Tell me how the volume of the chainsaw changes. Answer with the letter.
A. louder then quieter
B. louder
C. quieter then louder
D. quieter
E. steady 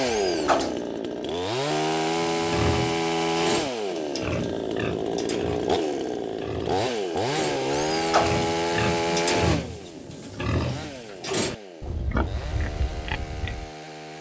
D.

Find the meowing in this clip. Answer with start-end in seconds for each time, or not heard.
0.1-0.8, 7.7-8.3.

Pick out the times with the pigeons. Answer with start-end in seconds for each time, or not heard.
not heard.